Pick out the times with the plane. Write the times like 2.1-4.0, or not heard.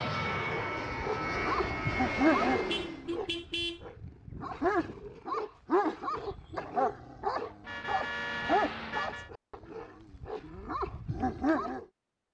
0.0-3.0.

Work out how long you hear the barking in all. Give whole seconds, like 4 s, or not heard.
11 s.